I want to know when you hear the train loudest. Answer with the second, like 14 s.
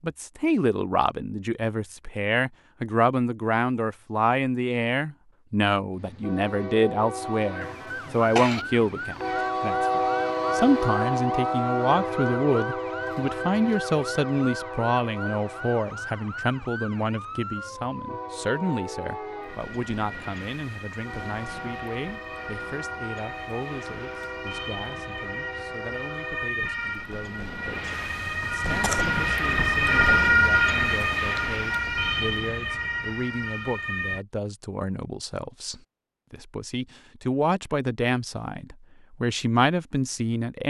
10 s.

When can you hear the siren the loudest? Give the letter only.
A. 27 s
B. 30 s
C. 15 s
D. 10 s
B.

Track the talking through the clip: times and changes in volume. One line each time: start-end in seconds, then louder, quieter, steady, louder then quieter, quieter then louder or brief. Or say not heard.
0.0-40.6 quieter then louder.